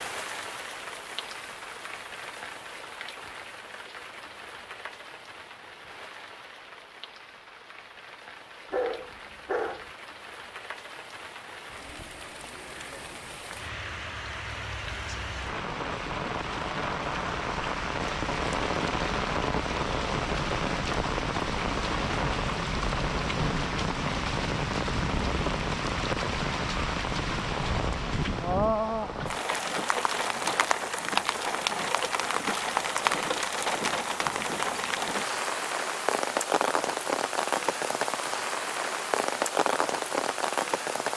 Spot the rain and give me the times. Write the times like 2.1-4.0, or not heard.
0.0-41.1.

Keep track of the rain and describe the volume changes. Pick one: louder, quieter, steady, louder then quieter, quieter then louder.
louder.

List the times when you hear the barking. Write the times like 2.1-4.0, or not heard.
8.7-9.8.